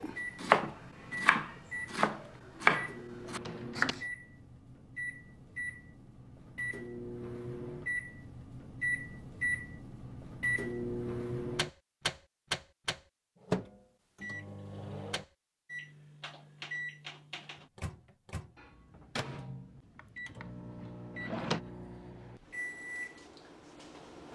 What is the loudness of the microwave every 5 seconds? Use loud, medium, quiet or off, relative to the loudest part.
medium, loud, loud, medium, medium.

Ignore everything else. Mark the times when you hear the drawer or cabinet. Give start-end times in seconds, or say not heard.
3.2-4.0, 19.9-21.6.